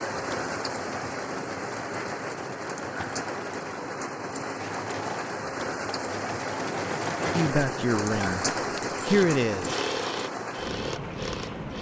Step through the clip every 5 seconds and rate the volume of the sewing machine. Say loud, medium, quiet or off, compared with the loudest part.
medium, loud, loud.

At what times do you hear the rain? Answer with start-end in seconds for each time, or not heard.
0.0-11.7.